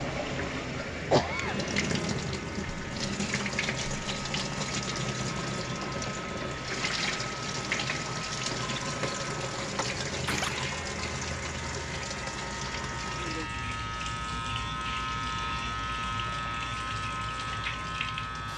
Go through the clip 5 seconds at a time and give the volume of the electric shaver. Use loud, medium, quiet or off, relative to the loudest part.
medium, medium, loud, loud.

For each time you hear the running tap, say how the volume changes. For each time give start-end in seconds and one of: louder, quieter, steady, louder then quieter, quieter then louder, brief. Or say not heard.
0.0-18.5 quieter.